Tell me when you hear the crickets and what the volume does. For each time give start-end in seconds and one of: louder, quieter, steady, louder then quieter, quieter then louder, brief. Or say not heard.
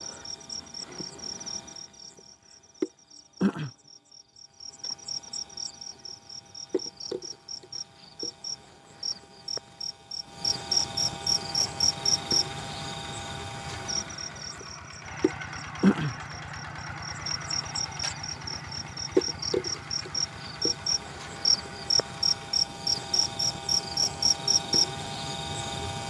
0.0-26.0 louder.